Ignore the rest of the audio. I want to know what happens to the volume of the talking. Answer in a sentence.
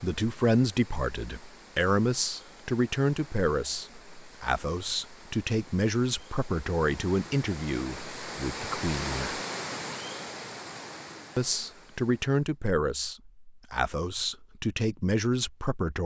The volume of the talking stays about the same.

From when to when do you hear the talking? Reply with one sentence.
The talking can be heard from 0.0 to 9.4 s and from 11.3 to 16.0 s.